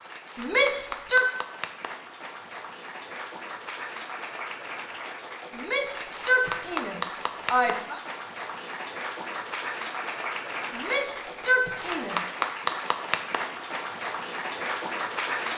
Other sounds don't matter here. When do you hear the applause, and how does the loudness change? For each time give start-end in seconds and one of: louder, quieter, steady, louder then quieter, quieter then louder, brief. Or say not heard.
0.0-15.5 louder.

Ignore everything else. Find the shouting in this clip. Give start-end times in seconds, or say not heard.
0.3-1.2, 5.5-8.0, 10.8-12.2.